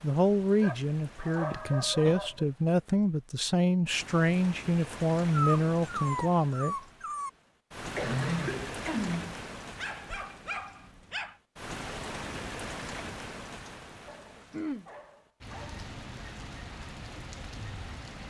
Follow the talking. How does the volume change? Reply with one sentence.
The loudness of the talking stays about the same.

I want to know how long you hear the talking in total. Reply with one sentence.
The talking can be heard for 7 seconds in total.